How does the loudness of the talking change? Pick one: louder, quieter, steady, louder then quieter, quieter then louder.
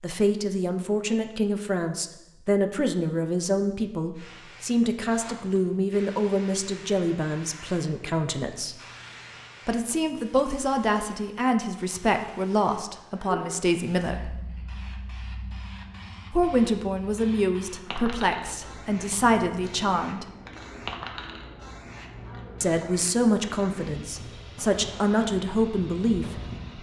steady.